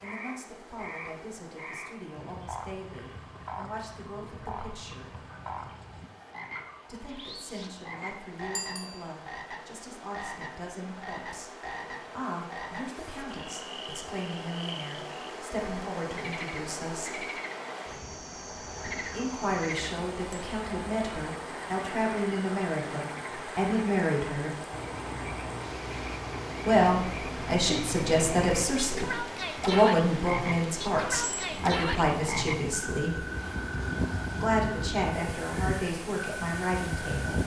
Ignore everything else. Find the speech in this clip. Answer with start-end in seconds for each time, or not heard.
0.0-5.2, 6.8-17.3, 19.1-24.5, 26.6-33.2, 34.4-37.4.